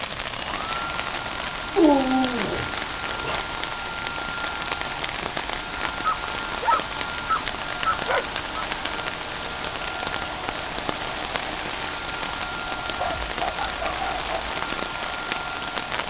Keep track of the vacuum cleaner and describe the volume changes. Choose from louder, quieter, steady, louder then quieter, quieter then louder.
steady.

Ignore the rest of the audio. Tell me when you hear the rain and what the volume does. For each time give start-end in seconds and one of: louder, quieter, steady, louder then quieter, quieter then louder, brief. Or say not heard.
0.0-16.0 steady.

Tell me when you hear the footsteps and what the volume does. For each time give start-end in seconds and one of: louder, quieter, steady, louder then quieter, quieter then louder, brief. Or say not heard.
not heard.